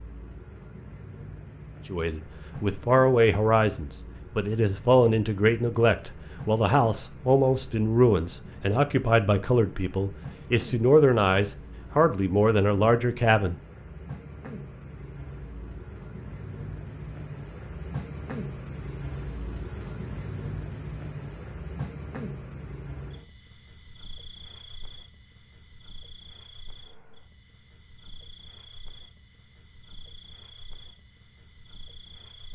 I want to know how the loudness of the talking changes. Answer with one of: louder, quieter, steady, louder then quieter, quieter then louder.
steady.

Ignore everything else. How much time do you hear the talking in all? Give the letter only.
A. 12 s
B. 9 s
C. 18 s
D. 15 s
A.